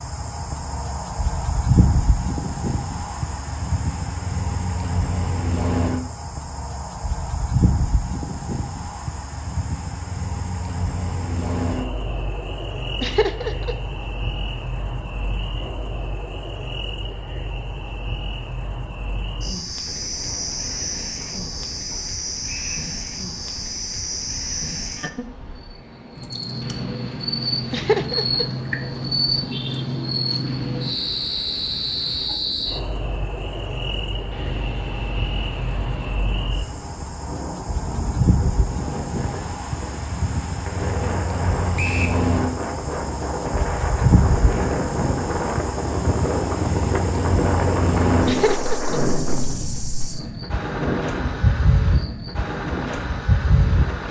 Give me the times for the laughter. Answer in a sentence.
You can hear the laughter from 13.0 to 13.8 s, from 27.7 to 28.4 s and from 48.2 to 49.0 s.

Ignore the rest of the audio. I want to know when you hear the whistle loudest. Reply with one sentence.
The volume of the whistle peaks at 42 seconds.